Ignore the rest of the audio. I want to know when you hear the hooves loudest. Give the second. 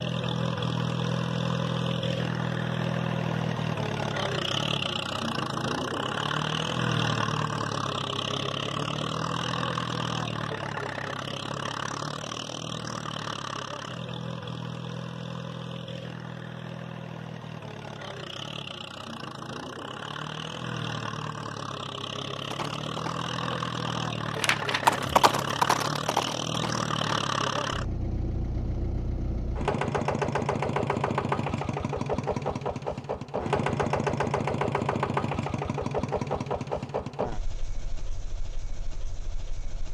25 s.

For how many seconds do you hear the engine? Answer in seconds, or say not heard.
40 s.